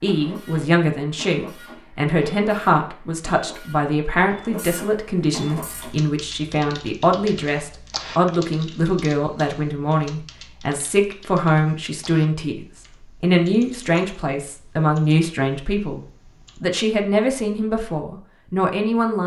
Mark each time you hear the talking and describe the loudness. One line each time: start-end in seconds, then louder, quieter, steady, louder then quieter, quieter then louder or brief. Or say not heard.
0.0-19.2 steady.